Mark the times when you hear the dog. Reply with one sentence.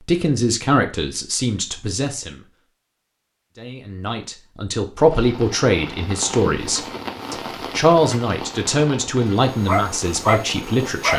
The dog can be heard from 9.6 to 11.1 s.